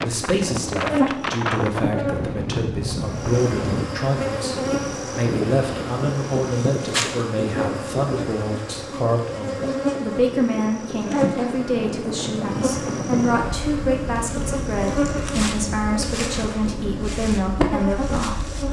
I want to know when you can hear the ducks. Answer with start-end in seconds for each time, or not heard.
not heard.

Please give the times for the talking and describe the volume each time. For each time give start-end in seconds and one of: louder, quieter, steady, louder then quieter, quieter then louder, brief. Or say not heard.
0.0-18.6 steady.